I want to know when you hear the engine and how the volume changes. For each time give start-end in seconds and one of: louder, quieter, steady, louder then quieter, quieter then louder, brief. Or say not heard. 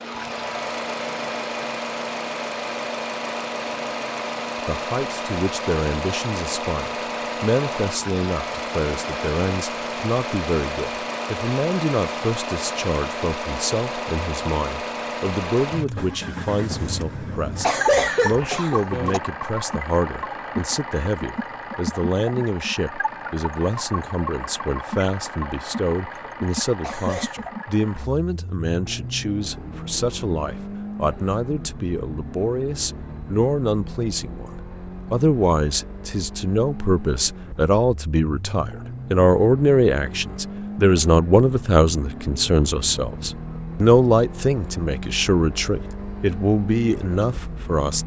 0.0-48.0 quieter.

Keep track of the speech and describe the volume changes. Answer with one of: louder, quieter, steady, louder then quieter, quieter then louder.
louder.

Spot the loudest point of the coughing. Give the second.
18 s.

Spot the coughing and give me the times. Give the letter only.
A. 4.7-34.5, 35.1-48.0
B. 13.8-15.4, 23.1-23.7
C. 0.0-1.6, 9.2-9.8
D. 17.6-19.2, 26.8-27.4
D.